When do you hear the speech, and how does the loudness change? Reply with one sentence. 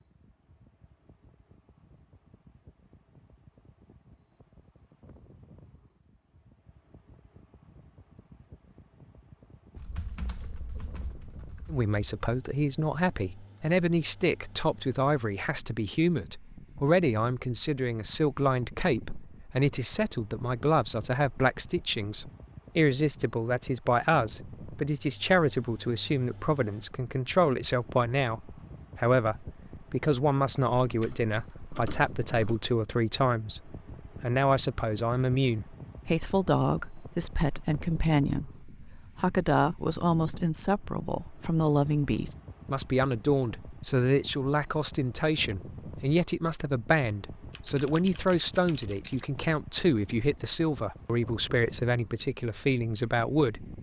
You can hear the speech from 11.7 to 53.7 s, at a steady volume.